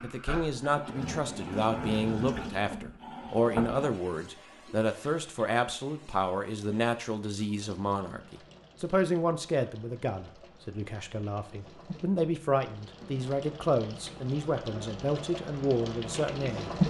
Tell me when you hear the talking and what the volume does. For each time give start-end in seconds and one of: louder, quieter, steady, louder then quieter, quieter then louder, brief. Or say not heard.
0.0-16.7 steady.